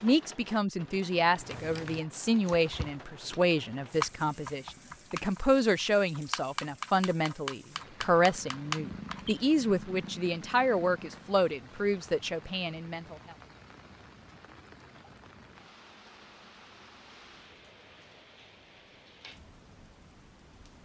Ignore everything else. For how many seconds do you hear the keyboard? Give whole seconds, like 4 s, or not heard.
8 s.